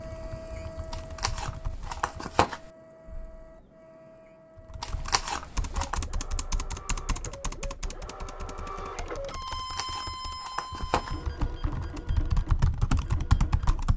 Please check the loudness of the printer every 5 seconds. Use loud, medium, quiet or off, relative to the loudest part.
medium, loud, loud.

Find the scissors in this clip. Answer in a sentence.
The scissors can be heard from 0.9 to 2.7 s, from 4.8 to 6.0 s and from 9.4 to 11.2 s.